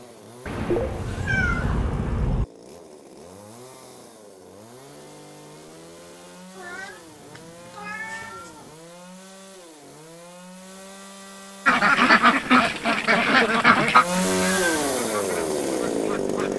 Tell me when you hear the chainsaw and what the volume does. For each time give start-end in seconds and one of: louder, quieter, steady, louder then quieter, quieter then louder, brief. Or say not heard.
0.0-16.5 louder.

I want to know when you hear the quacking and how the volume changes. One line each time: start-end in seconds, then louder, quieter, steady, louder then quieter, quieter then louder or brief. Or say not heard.
11.7-16.5 quieter.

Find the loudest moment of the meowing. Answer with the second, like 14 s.
1 s.